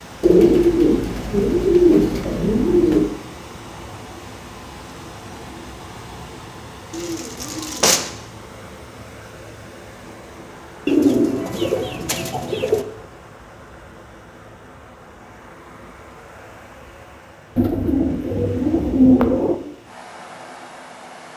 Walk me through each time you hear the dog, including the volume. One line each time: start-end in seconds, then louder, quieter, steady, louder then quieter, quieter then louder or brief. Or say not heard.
not heard.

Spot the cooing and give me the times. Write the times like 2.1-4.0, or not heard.
0.2-3.1, 6.9-8.1, 10.8-12.8, 17.6-19.6.